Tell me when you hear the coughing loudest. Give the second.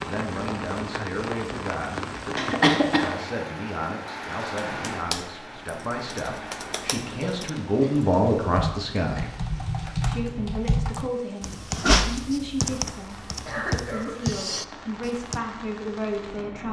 3 s.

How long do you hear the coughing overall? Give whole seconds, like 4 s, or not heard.
2 s.